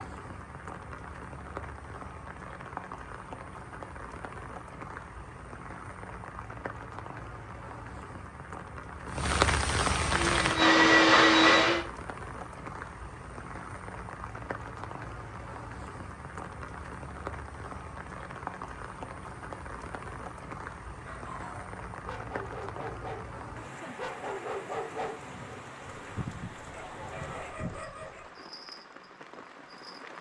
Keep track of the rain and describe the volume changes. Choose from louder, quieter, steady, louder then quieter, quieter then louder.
louder then quieter.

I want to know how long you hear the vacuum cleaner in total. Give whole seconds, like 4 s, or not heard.
2 s.